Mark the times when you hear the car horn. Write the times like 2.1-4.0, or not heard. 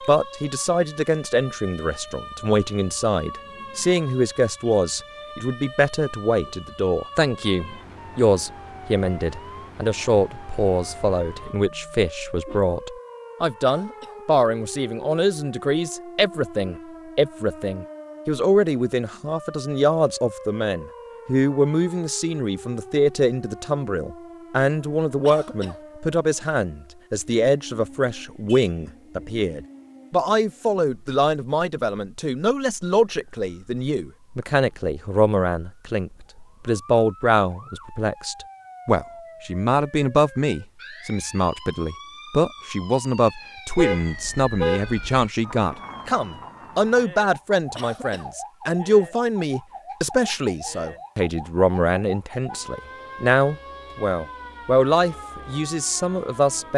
11.6-12.6, 28.4-29.2, 43.8-45.2.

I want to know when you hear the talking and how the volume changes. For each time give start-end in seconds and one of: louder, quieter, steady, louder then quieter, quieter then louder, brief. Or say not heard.
0.1-56.7 steady.